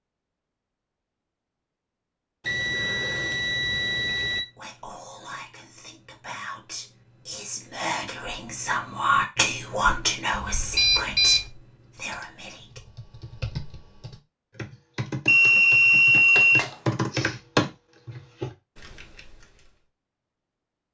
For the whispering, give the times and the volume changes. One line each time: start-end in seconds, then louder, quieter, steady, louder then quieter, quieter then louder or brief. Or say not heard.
4.4-12.8 louder then quieter.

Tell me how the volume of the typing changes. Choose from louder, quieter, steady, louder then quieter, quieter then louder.
louder then quieter.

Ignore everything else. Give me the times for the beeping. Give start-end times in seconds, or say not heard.
2.5-4.4, 10.4-11.4, 15.2-16.7.